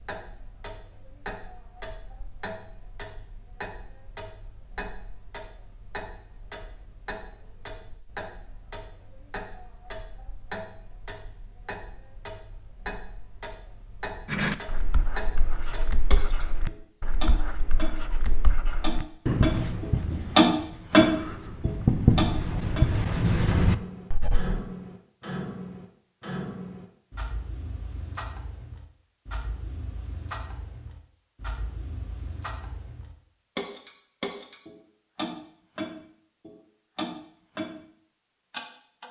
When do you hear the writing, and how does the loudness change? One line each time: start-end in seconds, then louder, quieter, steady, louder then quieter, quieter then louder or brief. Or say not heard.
14.3-24.6 louder.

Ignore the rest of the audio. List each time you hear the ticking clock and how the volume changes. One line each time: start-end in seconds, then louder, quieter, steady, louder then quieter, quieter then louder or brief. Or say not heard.
0.0-37.8 louder then quieter
38.5-39.0 brief.